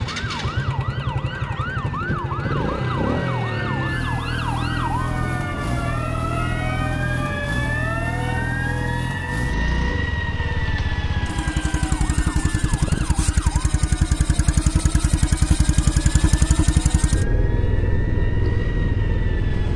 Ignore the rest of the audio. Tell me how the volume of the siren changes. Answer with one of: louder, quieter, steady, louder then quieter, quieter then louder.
quieter.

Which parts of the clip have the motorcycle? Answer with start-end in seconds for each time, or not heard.
0.0-19.7.